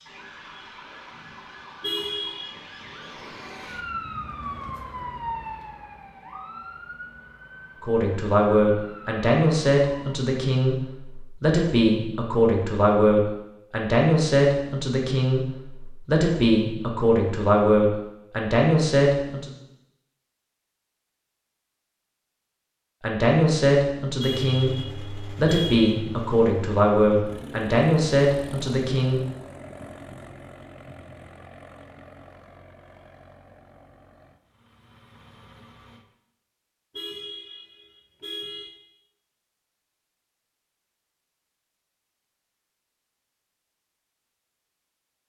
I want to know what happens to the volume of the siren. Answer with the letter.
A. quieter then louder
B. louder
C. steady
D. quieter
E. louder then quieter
E.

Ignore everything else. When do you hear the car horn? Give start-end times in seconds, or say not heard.
1.8-2.5, 24.2-25.9, 36.9-38.7.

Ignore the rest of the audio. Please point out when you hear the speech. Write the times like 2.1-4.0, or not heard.
7.8-19.5, 23.0-29.2.